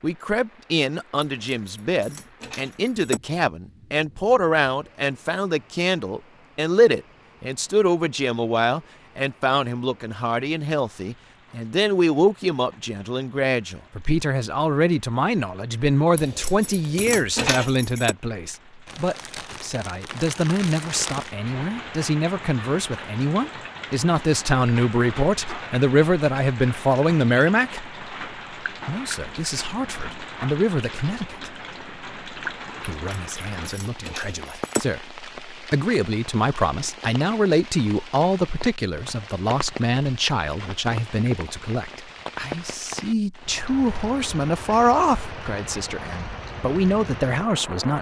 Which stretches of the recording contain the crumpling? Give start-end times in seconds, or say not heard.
18.9-21.4.